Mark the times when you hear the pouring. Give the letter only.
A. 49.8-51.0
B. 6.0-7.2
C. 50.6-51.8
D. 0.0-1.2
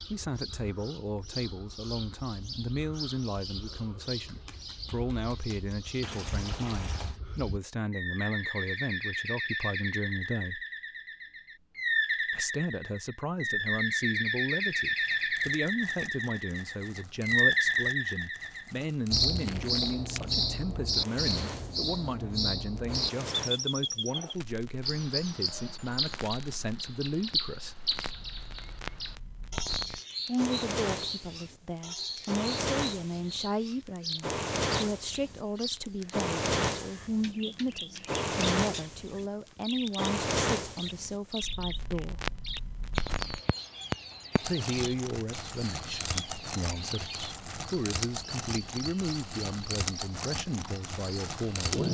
B.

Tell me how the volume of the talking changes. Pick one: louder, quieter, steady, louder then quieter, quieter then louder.
steady.